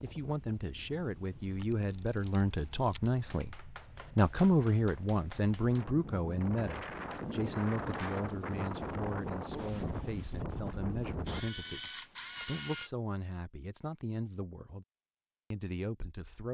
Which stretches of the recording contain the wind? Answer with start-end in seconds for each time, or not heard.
0.0-11.5.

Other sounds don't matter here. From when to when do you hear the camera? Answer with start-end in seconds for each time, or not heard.
1.6-3.1, 7.0-8.2, 11.2-12.9.